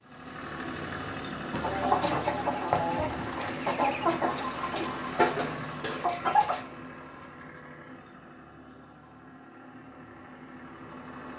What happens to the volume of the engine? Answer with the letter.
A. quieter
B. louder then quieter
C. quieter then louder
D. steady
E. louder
A.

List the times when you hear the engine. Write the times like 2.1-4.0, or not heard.
0.0-11.3.